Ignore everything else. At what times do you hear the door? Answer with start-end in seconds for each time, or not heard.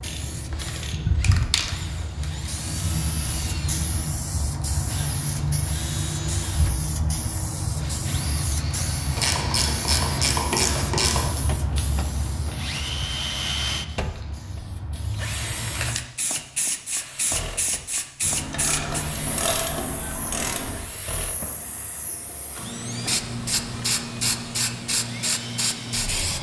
20.6-21.5.